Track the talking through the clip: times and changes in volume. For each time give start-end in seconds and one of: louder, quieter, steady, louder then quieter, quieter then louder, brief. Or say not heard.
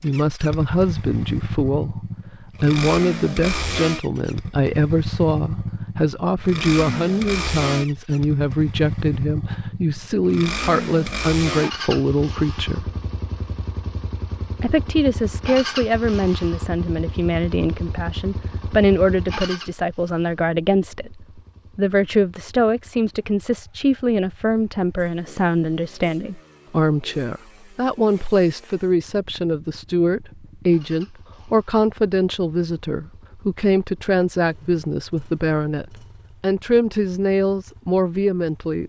0.0-2.0 brief
2.6-12.9 steady
14.6-38.8 steady.